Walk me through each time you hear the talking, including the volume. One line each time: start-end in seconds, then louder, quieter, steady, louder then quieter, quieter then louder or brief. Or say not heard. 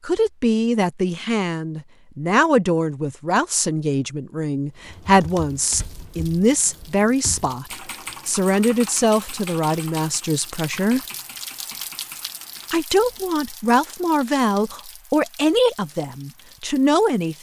0.1-11.0 steady
12.7-17.3 steady.